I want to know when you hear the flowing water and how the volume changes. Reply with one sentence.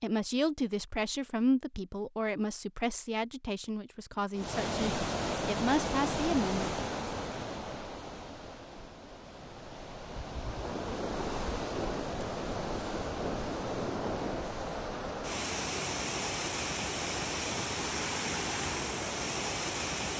You can hear the flowing water from 4.3 to 20.1 s, getting quieter then louder.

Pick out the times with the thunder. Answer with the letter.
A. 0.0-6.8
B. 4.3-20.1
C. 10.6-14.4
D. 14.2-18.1
C.